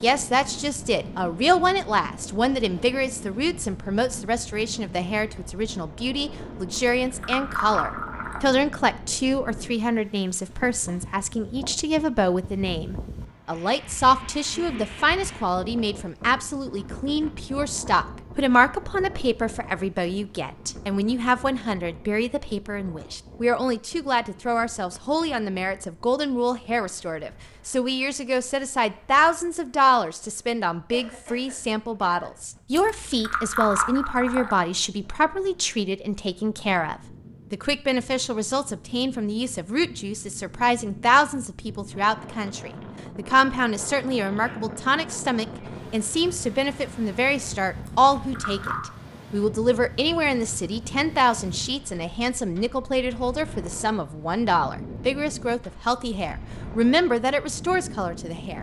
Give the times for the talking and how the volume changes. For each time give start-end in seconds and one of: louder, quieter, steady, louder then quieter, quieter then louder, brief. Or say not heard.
0.0-58.5 steady.